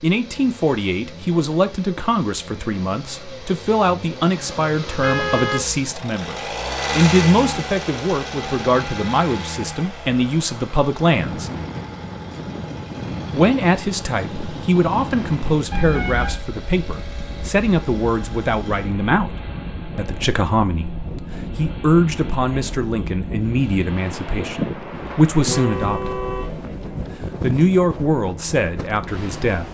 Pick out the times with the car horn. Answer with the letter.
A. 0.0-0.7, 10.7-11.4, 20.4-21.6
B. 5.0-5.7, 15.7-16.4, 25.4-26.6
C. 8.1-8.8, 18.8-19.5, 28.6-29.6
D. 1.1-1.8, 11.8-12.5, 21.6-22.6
B.